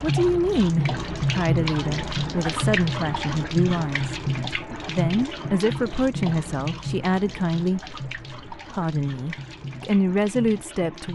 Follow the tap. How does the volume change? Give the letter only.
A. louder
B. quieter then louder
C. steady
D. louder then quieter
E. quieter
E.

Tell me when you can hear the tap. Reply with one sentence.
The tap can be heard from 0.0 to 11.1 s.